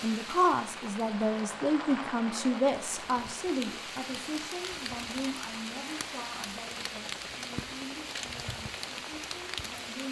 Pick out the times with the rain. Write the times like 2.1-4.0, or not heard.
0.0-10.0.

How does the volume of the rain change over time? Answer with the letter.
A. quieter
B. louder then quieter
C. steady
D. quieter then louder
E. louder
E.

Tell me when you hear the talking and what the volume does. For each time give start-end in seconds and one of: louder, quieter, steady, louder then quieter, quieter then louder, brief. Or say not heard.
0.0-10.0 quieter.